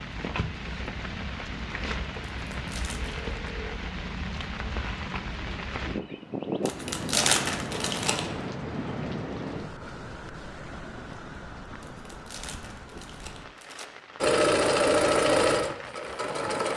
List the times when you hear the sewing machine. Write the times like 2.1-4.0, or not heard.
14.2-16.7.